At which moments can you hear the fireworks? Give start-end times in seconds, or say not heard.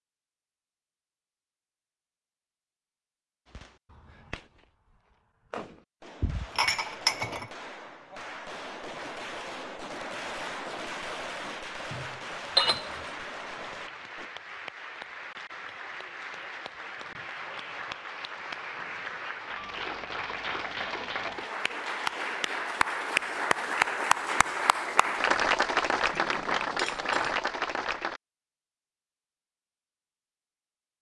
3.5-14.3.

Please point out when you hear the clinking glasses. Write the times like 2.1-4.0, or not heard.
6.2-7.5, 11.9-13.1, 26.1-27.4.